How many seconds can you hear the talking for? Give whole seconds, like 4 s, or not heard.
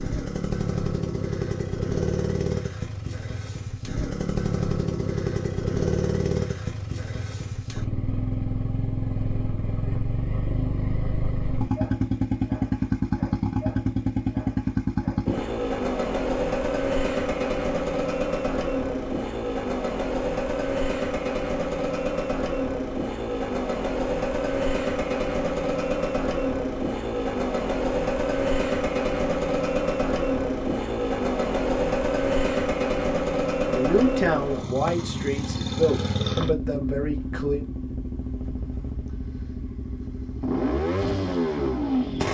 4 s.